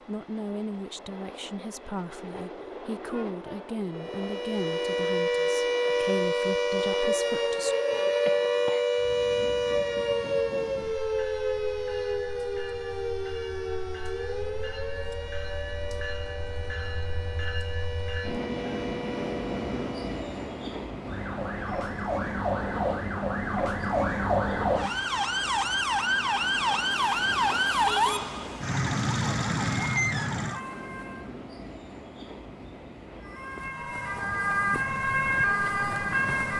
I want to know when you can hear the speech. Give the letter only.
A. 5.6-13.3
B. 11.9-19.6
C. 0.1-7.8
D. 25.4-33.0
C.